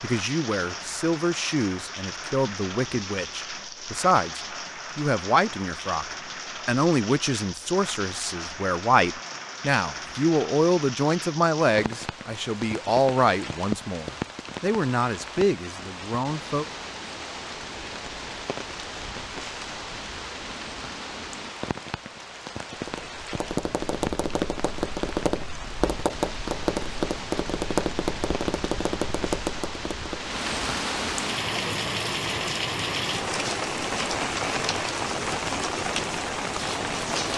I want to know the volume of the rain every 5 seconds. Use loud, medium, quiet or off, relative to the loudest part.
medium, medium, medium, medium, medium, medium, loud, loud.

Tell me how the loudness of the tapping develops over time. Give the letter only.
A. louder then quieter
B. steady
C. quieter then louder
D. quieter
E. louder
B.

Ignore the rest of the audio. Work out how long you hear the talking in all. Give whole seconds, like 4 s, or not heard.
17 s.